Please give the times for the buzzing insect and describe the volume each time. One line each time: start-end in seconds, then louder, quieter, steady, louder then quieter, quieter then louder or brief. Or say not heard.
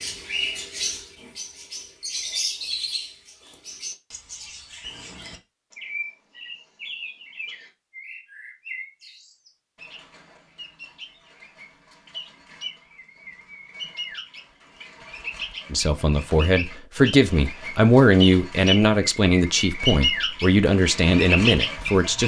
not heard.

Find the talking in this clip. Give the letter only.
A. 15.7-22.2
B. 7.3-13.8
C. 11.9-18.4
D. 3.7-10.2
A.